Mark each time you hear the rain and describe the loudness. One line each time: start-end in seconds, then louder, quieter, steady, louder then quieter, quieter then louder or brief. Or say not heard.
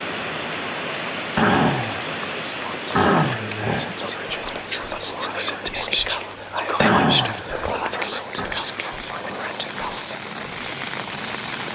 0.0-11.7 quieter then louder.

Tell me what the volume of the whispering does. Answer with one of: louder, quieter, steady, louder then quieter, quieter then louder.
louder then quieter.